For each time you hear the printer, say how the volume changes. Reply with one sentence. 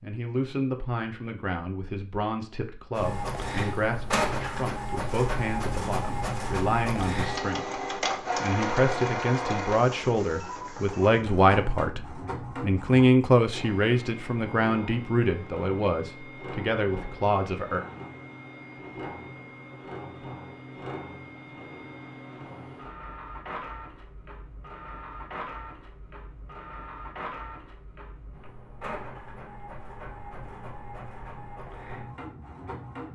You can hear the printer from 3.0 to 33.1 s, getting quieter.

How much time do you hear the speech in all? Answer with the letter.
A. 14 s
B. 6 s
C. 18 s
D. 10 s
C.